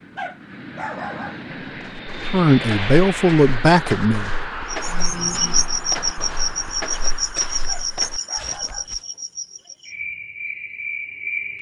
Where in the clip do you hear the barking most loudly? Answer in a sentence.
The volume of the barking peaks at 1 second.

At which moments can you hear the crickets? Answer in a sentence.
You can hear the crickets from 4.7 to 11.5 s.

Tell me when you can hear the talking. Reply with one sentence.
You can hear the talking from 2.3 to 4.3 s.